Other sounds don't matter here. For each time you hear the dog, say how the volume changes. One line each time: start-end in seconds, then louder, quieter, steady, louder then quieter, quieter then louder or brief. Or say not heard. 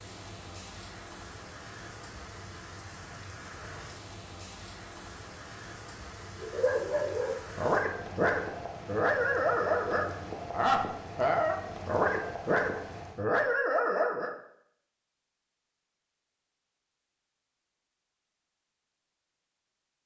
6.4-14.3 steady.